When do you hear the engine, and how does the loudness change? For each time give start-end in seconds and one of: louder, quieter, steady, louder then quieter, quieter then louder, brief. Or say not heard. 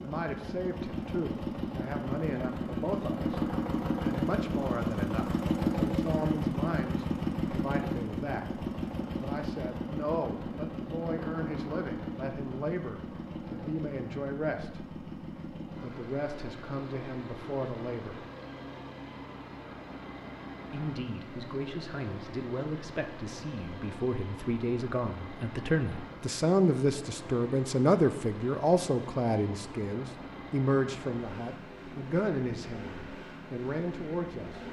0.0-34.6 quieter.